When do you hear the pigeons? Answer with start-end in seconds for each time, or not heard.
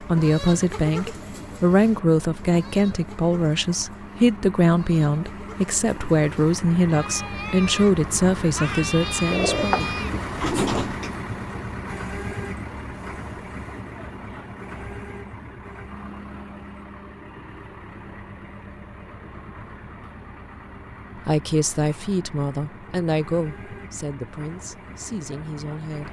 9.2-11.2.